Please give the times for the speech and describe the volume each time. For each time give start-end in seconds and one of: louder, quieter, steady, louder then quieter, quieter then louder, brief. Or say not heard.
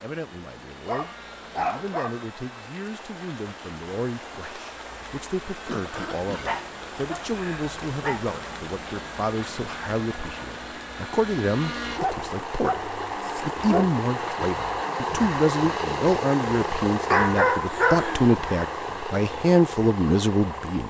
0.0-20.8 louder.